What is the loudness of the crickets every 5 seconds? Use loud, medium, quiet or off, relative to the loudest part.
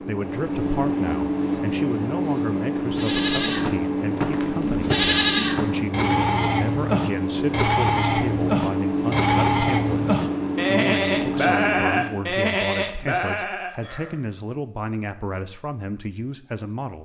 loud, loud, loud, off.